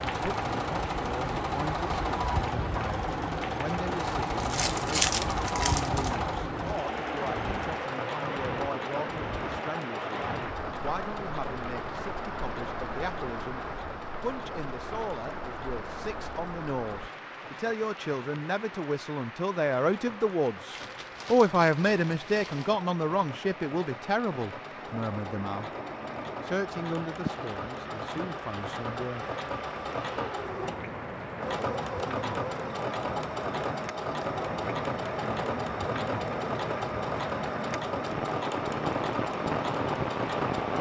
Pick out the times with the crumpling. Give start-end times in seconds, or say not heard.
4.3-6.2, 20.7-22.8.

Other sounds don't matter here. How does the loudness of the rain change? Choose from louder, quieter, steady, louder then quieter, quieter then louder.
quieter then louder.